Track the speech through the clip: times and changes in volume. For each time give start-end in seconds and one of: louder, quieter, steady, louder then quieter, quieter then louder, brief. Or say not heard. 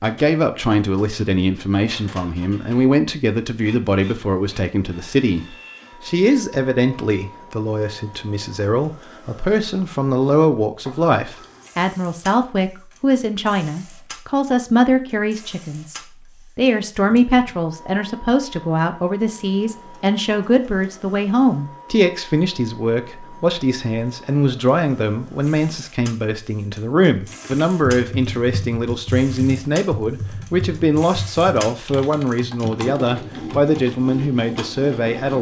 0.0-35.3 steady.